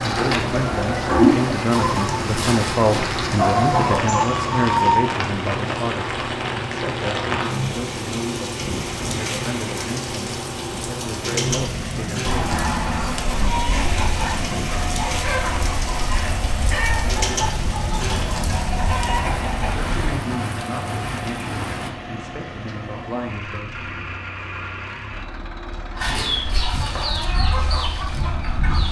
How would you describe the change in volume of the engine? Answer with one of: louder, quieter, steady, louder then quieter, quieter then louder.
quieter.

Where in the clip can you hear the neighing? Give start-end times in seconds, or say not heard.
not heard.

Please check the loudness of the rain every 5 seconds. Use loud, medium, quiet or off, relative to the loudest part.
loud, loud, loud, loud, loud, off.